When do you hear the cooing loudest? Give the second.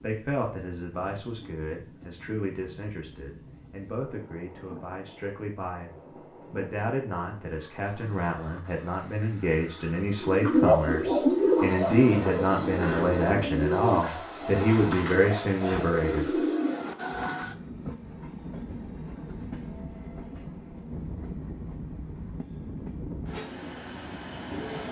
11 s.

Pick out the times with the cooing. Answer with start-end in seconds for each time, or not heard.
10.2-16.9.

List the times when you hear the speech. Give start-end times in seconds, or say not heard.
0.0-16.4.